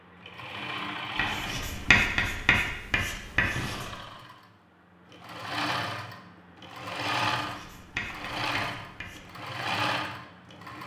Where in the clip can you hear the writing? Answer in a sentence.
The writing can be heard from 1.1 to 3.9 s and from 7.5 to 9.2 s.